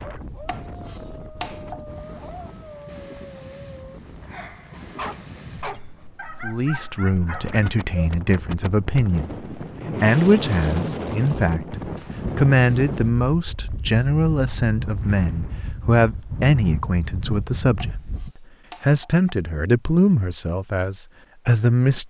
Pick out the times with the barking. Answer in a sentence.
You can hear the barking from 0.0 to 8.2 s.